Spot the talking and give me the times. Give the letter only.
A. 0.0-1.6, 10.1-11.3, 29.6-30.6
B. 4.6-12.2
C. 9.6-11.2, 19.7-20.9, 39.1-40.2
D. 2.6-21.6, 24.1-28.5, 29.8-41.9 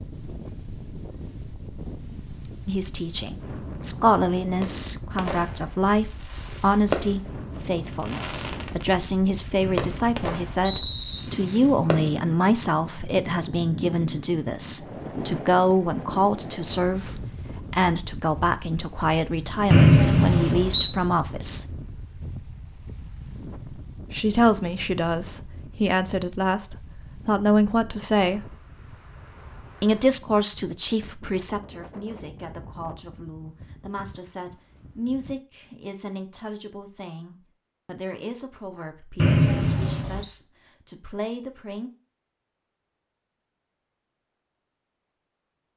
D.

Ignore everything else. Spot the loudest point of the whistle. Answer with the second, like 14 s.
20 s.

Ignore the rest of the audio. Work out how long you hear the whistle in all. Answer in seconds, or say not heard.
4 s.